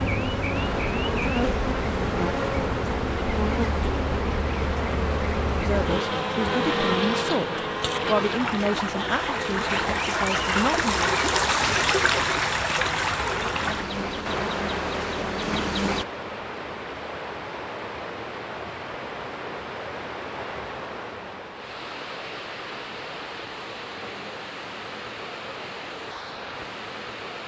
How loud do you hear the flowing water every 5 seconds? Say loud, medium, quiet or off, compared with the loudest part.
medium, medium, loud, medium, medium, medium.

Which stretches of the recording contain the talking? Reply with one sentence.
You can hear the talking from 5.5 to 11.3 s.